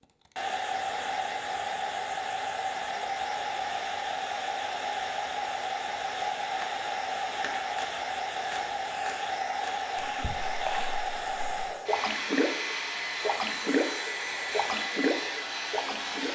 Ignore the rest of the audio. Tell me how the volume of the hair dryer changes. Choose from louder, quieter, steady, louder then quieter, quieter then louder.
steady.